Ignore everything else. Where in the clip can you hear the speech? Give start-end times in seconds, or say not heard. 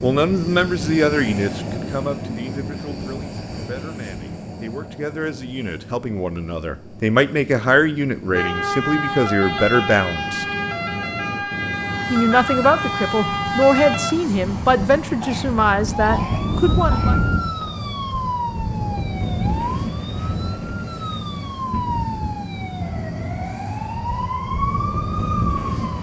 0.0-10.4, 12.1-17.1.